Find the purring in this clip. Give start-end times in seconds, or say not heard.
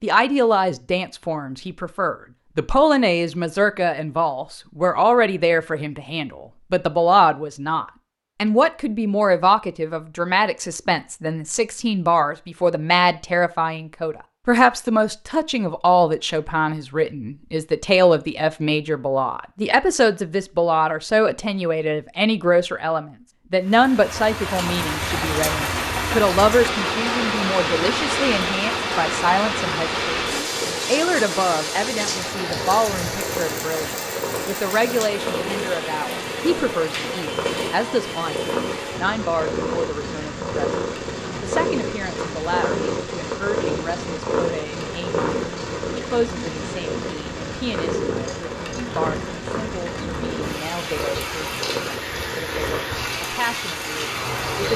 30.4-52.9.